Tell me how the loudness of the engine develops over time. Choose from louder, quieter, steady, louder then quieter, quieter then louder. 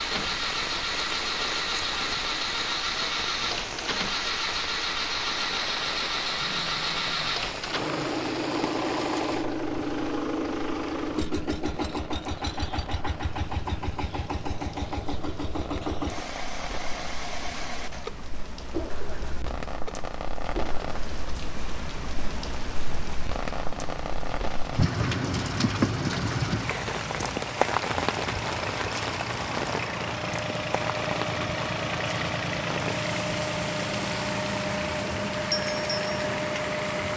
quieter then louder.